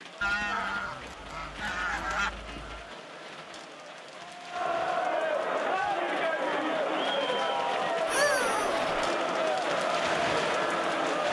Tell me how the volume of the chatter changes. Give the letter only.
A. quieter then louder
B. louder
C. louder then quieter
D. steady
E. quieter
B.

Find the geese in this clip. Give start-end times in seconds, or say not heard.
0.2-3.0, 8.1-8.9.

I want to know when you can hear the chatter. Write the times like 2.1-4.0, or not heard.
0.0-11.2.